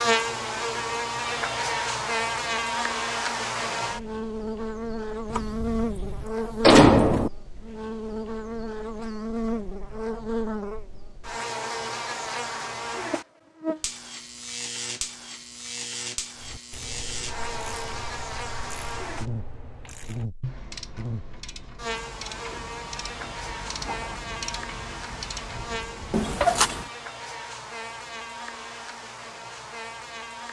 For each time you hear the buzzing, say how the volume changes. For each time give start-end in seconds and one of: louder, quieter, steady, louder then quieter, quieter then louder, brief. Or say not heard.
0.0-30.4 quieter.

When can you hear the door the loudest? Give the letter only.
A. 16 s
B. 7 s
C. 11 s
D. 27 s
B.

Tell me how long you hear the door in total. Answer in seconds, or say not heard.
3 s.